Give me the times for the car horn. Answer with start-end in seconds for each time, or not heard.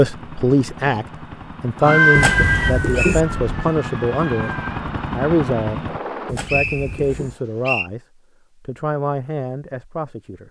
2.1-3.7, 6.2-7.3.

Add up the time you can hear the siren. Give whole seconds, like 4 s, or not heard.
3 s.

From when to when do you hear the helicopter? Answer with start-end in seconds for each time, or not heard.
0.0-6.3.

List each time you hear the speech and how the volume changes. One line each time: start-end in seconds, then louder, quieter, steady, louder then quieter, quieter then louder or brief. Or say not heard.
0.0-10.4 quieter.